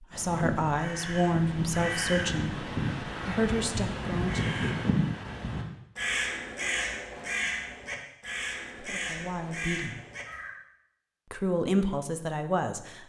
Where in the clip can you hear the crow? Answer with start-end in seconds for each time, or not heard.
0.1-10.6.